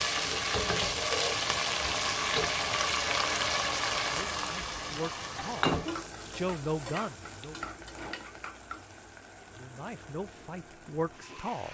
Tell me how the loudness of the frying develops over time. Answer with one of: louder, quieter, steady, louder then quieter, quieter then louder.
quieter.